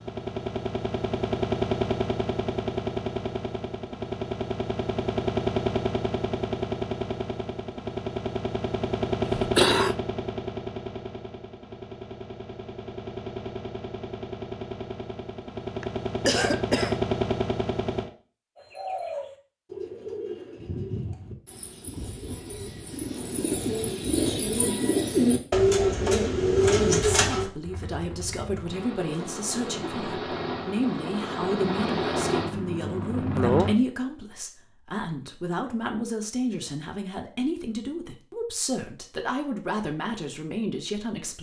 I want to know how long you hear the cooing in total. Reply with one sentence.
You can hear the cooing for 9 seconds altogether.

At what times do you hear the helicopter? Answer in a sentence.
You can hear the helicopter from 0.0 to 18.1 s and from 27.6 to 33.8 s.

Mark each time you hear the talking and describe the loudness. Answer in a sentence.
You can hear the talking from 27.1 to 41.3 s, at a steady volume.